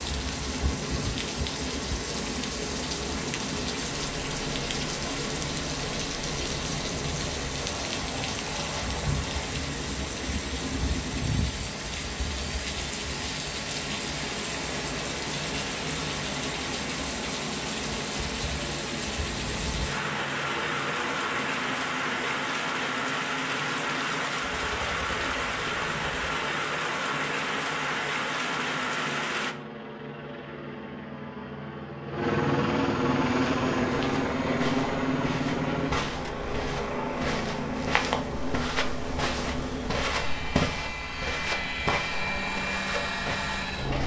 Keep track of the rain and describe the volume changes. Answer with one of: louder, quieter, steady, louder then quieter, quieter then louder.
steady.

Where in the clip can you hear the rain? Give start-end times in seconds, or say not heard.
0.0-29.6.